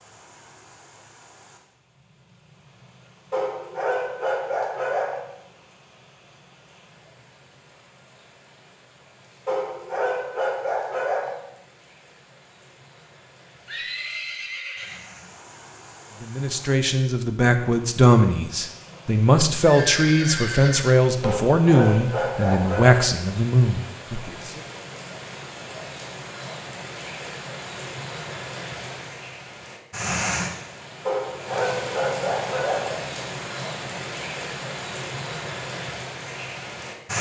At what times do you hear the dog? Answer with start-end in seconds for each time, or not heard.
3.3-5.2, 9.4-11.4, 21.2-23.0, 31.1-33.0.